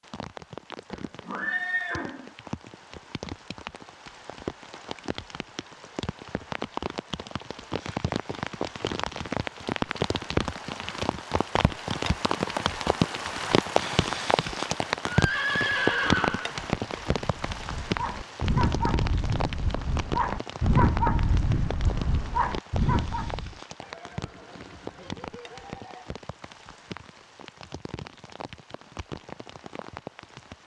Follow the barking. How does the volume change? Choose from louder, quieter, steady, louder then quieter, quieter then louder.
louder.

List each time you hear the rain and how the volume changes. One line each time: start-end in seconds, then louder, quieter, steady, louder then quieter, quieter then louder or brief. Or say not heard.
0.0-30.6 louder then quieter.